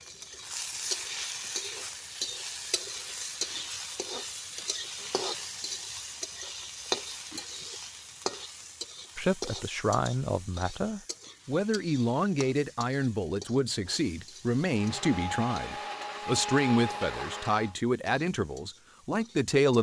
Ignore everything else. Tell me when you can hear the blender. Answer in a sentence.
You can hear the blender from 14.7 to 17.8 s.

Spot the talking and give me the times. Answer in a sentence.
The talking can be heard from 9.2 to 19.7 s.